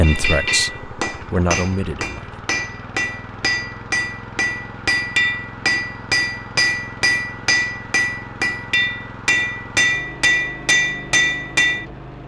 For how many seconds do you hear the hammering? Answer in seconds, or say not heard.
12 s.